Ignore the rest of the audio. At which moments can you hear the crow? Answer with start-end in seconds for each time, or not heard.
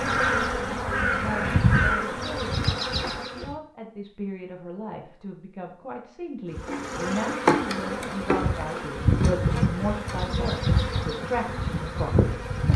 0.0-2.3.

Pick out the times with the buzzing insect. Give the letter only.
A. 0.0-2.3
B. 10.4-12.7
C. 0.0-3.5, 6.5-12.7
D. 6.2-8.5
C.